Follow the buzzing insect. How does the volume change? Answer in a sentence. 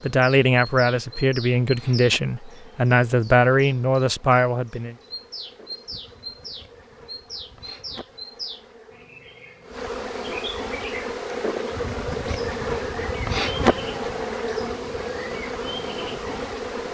The volume of the buzzing insect goes up.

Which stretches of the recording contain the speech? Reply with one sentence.
You can hear the speech from 0.0 to 5.0 s.